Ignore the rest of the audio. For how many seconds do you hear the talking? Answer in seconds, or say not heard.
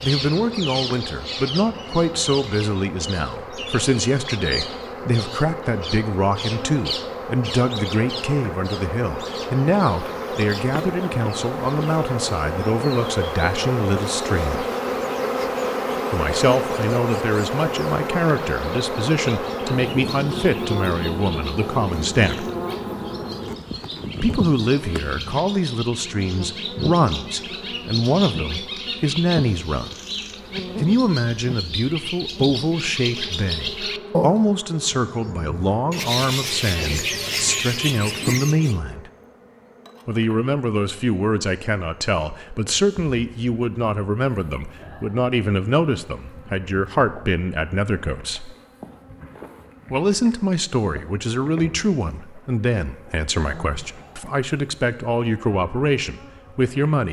51 s.